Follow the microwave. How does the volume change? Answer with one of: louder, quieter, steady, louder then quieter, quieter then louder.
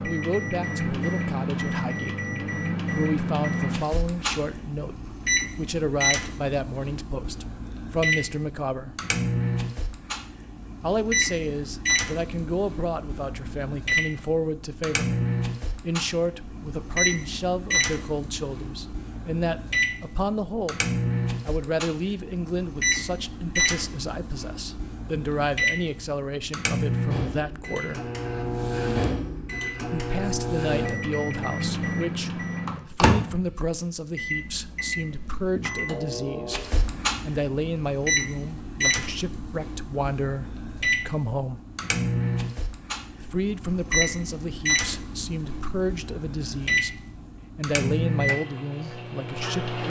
steady.